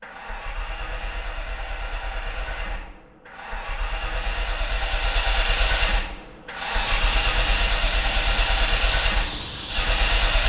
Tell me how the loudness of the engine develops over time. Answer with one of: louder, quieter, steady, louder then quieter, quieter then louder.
louder.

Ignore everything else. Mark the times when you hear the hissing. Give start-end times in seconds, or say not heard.
6.7-10.4.